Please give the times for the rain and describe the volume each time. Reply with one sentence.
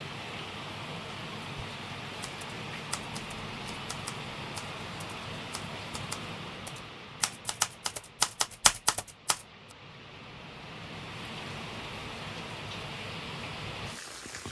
You can hear the rain from 0.0 to 14.4 s, getting quieter then louder.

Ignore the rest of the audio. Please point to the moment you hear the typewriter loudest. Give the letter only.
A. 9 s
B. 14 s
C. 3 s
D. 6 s
A.